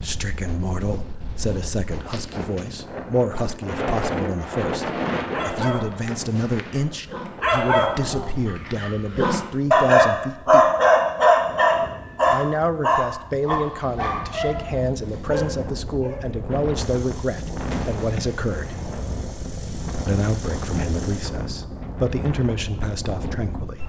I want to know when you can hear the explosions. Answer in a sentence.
You can hear the explosions from 17.7 to 19.4 s.